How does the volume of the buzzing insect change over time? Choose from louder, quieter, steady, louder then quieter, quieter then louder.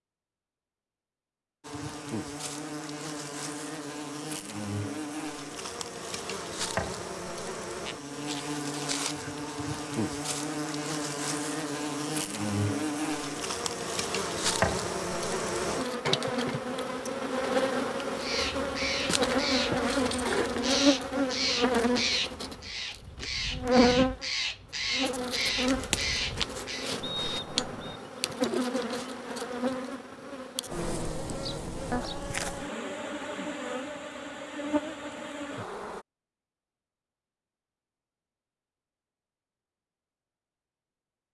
louder then quieter.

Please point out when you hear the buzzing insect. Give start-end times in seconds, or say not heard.
1.6-36.0.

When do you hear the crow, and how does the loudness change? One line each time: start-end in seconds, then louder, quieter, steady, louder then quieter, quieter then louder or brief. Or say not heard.
18.1-26.9 steady.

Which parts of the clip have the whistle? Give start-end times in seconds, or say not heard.
27.0-28.0.